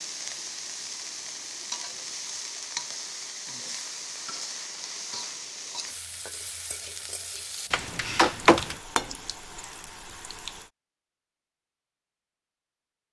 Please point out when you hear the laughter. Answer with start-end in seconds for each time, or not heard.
not heard.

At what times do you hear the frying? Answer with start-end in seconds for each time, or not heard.
0.0-10.7.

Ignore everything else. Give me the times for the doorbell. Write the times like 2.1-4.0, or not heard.
7.7-8.8.